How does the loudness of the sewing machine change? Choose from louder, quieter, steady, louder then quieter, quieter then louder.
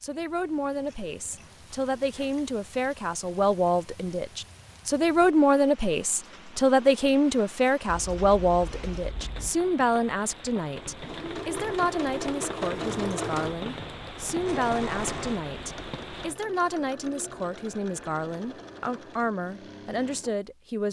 quieter.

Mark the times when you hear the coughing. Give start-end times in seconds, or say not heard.
not heard.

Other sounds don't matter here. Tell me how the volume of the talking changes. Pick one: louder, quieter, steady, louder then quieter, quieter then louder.
louder then quieter.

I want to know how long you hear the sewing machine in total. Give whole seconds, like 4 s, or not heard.
10 s.